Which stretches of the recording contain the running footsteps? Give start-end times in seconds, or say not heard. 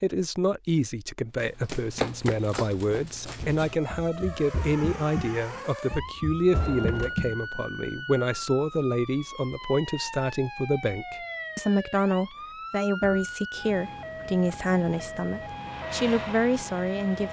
1.4-7.6.